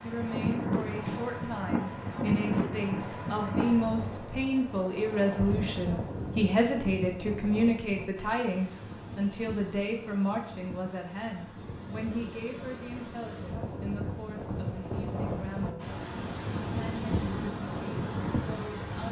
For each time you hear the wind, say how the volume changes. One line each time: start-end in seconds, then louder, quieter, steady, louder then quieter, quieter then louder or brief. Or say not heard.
0.0-19.0 quieter then louder.